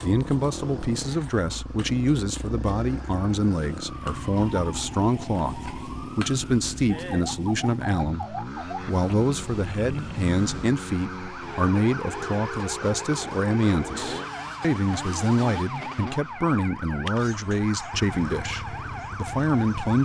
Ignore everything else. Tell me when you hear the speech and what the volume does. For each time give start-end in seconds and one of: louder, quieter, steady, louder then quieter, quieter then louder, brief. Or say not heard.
0.0-20.0 steady.